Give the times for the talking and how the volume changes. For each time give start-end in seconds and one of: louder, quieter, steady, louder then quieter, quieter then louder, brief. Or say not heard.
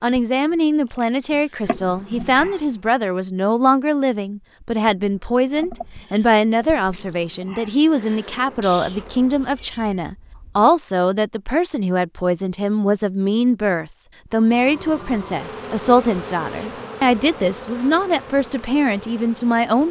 0.0-19.8 steady.